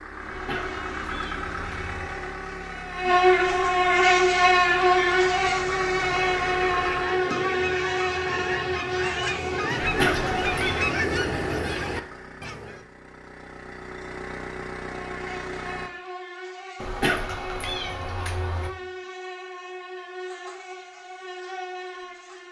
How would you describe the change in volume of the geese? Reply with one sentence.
The loudness of the geese goes up.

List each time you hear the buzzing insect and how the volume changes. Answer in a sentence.
The buzzing insect can be heard from 0.0 to 10.8 s, getting louder then quieter; and from 14.9 to 22.4 s, at a steady volume.